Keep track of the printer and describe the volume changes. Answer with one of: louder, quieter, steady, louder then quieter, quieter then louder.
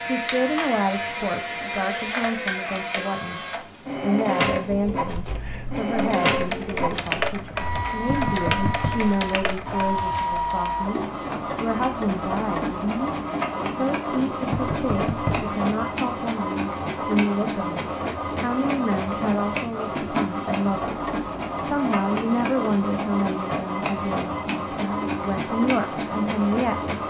steady.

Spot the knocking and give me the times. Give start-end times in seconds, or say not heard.
8.1-9.1, 14.5-15.5.